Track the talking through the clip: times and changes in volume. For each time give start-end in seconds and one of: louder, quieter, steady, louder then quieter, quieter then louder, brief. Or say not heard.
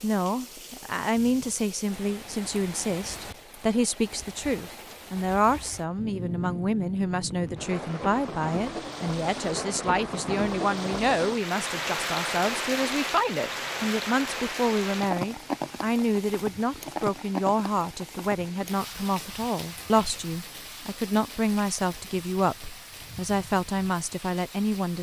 0.0-24.9 steady.